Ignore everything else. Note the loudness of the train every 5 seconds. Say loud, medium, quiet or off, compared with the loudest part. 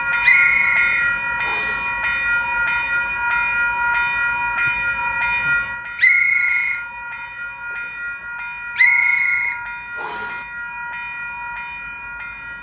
loud, medium, medium.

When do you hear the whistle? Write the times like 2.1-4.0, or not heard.
0.2-1.8, 6.0-6.8, 8.8-10.3.